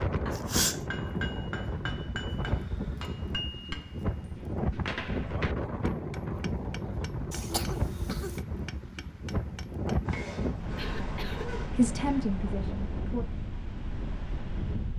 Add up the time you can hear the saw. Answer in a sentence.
The saw can be heard for 2 seconds in total.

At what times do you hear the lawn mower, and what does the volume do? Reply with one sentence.
You can't hear the lawn mower here.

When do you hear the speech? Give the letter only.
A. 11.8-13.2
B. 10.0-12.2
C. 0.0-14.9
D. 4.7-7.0
A.